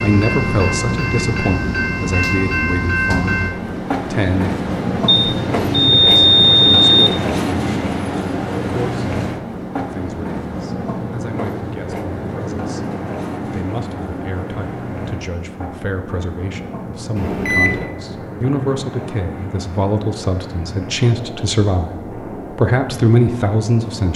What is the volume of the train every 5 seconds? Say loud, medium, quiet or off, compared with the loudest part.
loud, loud, medium, medium, medium.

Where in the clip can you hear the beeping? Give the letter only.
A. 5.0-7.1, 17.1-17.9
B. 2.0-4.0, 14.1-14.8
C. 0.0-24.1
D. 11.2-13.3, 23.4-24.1
A.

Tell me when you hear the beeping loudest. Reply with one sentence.
The loudest moment of the beeping is at 6 seconds.